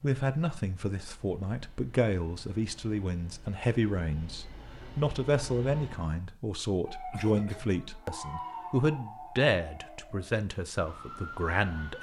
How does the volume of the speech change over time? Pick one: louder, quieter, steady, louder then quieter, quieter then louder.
steady.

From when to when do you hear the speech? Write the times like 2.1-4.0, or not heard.
0.0-11.9.